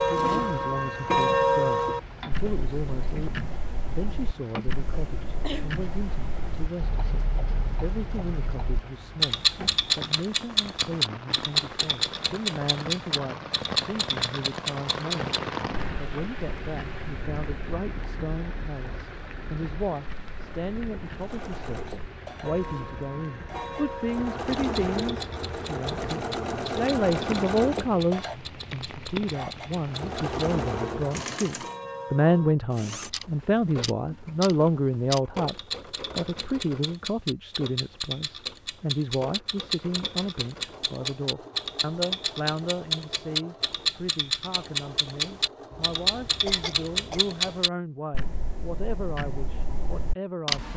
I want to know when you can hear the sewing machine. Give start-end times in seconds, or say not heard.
21.1-47.8.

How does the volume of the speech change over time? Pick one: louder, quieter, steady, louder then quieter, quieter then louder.
louder then quieter.